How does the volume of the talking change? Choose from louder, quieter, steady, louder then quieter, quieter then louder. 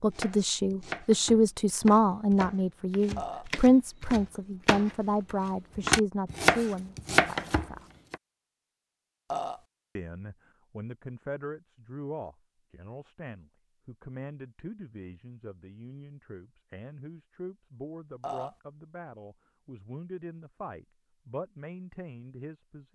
quieter.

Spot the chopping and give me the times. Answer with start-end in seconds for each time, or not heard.
0.1-8.2.